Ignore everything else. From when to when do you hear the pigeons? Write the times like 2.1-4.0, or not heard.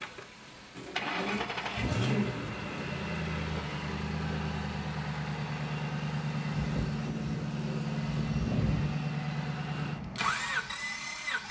0.7-2.5, 6.5-8.9.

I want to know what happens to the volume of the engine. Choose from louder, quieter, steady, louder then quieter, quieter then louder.
steady.